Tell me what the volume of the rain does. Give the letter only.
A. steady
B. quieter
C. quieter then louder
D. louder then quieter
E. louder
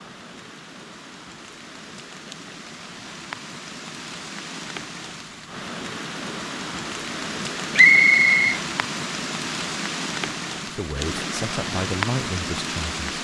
E.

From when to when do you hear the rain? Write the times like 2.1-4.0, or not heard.
0.0-13.1.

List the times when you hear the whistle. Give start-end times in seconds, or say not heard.
7.8-8.6.